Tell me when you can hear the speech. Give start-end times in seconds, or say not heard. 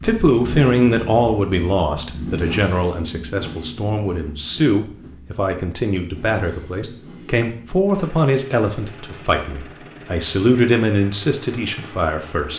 0.0-12.5.